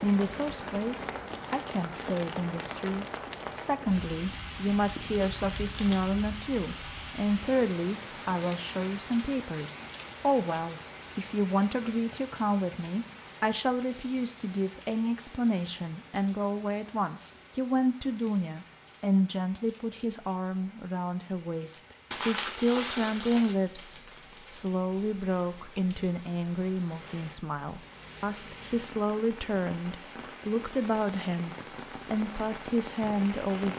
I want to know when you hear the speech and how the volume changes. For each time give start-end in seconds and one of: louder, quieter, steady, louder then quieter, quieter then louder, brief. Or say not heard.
0.0-33.7 steady.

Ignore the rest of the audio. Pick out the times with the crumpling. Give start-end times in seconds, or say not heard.
5.1-6.0, 22.1-24.6.